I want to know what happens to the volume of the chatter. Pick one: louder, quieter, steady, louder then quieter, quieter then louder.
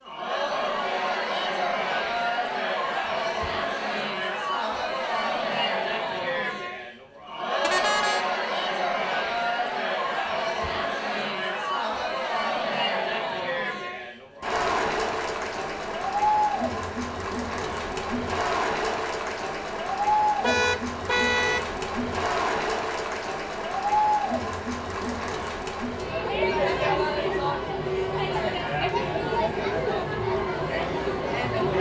steady.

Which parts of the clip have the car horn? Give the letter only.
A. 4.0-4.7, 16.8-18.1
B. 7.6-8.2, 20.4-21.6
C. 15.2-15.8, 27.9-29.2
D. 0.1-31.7
B.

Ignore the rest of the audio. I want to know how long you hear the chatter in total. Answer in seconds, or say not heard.
32 s.